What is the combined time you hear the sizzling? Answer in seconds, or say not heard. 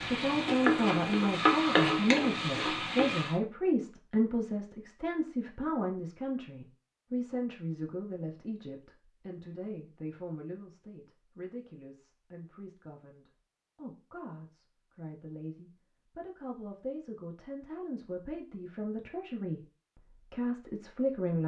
3 s.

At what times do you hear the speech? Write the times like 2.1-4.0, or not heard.
0.0-21.4.